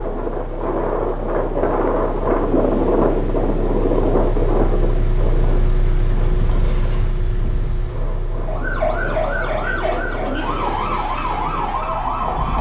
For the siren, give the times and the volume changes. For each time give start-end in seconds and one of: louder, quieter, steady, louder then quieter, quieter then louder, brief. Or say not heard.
8.4-12.5 steady.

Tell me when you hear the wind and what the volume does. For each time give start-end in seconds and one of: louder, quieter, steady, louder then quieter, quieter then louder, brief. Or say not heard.
0.0-12.5 quieter.